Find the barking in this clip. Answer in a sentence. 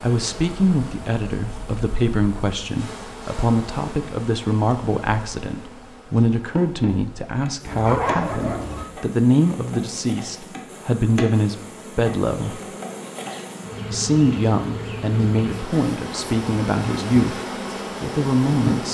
The barking can be heard from 7.7 to 8.8 s.